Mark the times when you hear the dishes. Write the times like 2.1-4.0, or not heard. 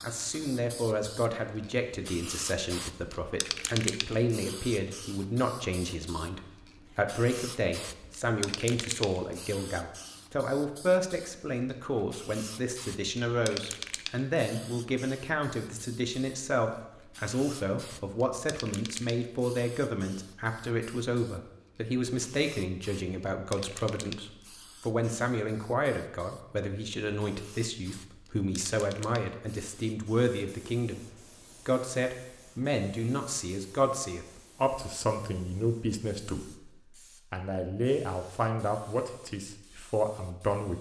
not heard.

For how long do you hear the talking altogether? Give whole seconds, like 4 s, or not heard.
40 s.